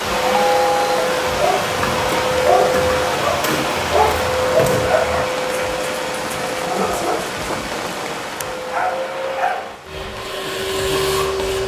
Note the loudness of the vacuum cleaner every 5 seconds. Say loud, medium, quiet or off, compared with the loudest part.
loud, medium, loud.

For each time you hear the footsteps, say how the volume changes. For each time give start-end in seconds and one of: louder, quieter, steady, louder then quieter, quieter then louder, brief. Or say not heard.
not heard.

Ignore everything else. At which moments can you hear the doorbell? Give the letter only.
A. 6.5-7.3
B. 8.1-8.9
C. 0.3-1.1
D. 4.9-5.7
C.